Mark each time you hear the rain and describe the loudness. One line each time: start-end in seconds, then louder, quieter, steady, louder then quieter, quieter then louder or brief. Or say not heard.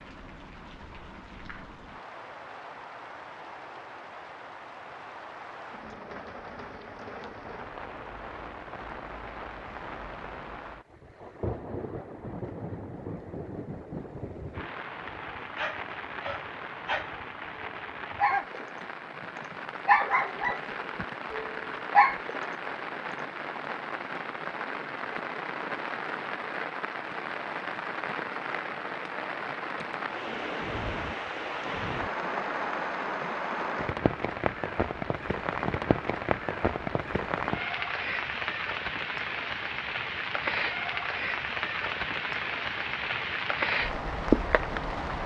0.0-45.2 louder.